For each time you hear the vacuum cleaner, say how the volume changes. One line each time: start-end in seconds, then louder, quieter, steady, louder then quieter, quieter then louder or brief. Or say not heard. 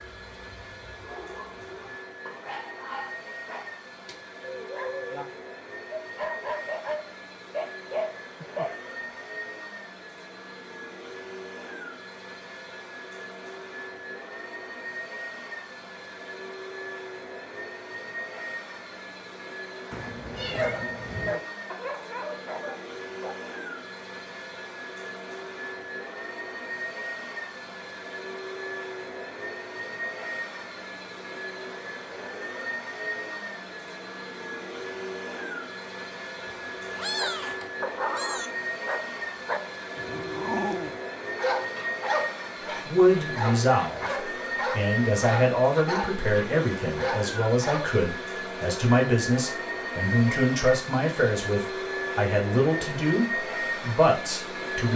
0.0-54.9 louder.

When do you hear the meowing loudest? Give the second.
37 s.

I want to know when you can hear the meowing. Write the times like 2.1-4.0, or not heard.
19.9-21.4, 36.5-38.5.